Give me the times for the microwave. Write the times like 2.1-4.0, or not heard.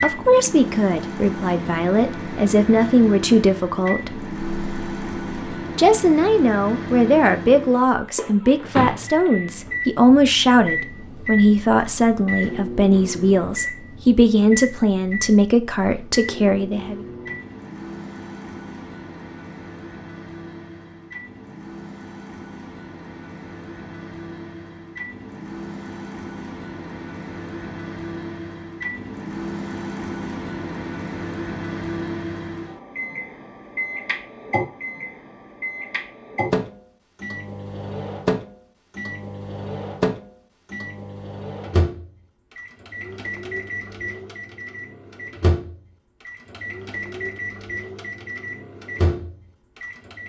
0.0-50.2.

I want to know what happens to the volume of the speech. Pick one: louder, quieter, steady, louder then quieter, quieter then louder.
steady.